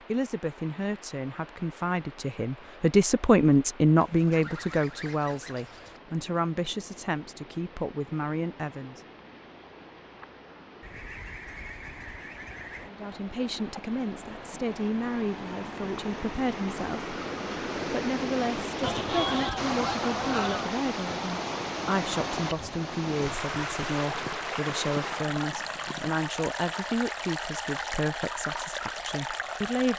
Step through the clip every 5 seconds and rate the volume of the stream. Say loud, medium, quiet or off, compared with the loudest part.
quiet, quiet, quiet, loud, loud, loud.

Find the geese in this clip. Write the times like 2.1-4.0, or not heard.
4.0-6.0, 10.8-12.9, 18.8-20.8, 23.2-26.2.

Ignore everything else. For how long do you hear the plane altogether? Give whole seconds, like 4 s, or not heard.
not heard.